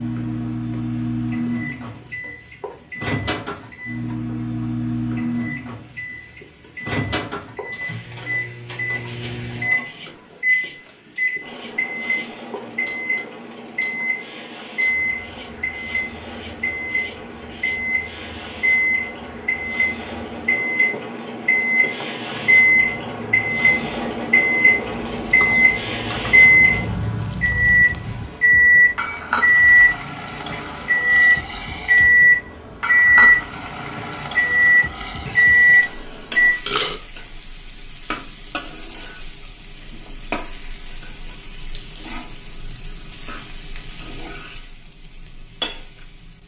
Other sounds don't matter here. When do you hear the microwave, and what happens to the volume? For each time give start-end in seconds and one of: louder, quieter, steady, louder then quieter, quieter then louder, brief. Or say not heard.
0.0-36.5 louder.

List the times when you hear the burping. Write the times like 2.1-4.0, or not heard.
35.2-37.0.